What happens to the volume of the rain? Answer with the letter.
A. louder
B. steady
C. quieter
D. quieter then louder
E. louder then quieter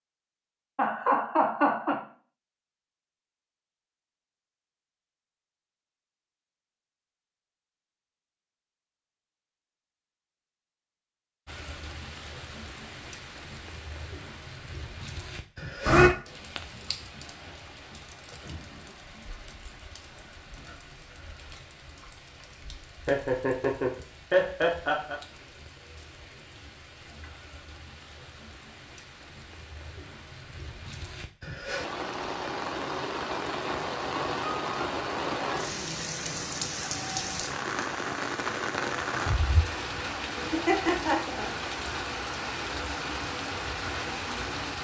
D.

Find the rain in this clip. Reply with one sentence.
The rain can be heard from 11.4 to 44.7 s.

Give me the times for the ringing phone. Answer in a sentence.
You can't hear the ringing phone here.